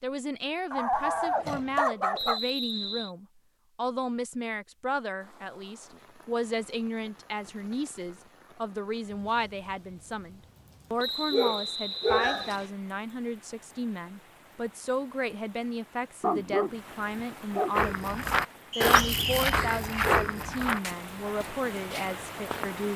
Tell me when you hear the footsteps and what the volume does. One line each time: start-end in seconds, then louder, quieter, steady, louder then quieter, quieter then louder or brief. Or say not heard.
17.7-22.9 quieter.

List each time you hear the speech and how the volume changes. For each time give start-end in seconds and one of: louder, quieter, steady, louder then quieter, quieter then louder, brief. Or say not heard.
0.0-22.9 steady.